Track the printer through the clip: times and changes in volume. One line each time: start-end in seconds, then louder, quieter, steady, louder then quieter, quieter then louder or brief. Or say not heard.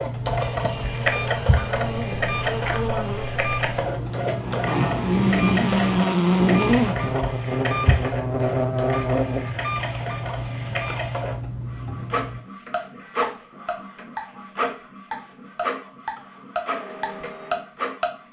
0.0-18.2 quieter.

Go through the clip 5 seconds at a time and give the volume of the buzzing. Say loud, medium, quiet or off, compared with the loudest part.
medium, loud, off, off.